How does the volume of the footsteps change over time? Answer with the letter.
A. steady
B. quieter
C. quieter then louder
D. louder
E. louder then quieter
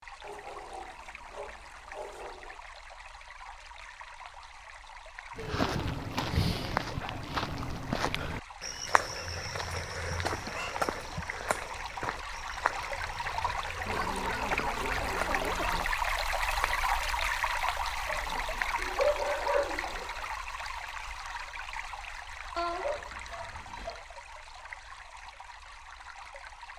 B.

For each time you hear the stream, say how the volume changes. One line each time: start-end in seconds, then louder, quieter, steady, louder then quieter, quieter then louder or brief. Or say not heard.
0.0-26.7 louder then quieter.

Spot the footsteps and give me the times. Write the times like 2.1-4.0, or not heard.
5.3-16.9.